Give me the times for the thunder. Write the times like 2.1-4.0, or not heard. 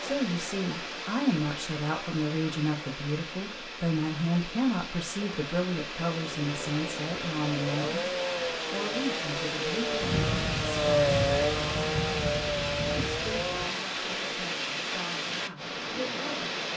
10.0-13.7.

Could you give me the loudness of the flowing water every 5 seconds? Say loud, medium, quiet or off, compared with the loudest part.
medium, loud, loud, loud.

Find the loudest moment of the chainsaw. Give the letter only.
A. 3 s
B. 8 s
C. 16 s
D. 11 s
D.